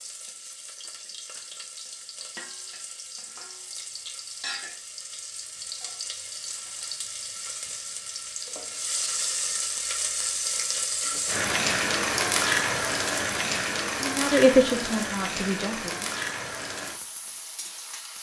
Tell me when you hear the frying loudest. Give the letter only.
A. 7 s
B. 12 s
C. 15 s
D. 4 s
B.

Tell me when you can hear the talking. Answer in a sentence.
The talking can be heard from 14.0 to 16.1 s.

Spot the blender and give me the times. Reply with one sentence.
The blender can't be heard in this clip.